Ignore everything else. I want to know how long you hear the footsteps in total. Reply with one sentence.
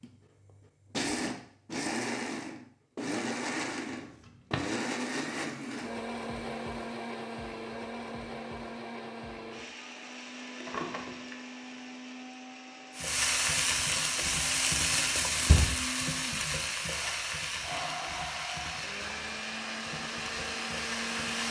The footsteps can't be heard in this clip.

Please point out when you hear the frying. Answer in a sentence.
The frying can be heard from 12.9 to 21.4 s.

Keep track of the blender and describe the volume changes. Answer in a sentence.
The volume of the blender goes down, then up.